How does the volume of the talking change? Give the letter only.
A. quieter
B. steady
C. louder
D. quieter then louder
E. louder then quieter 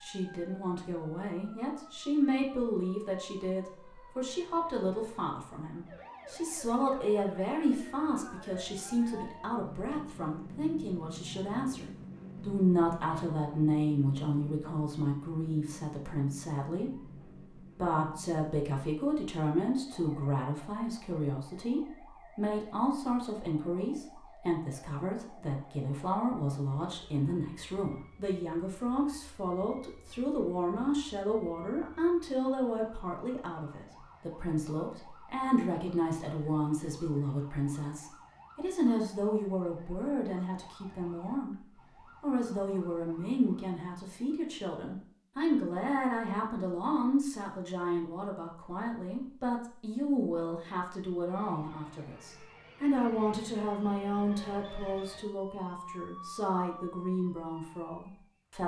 B.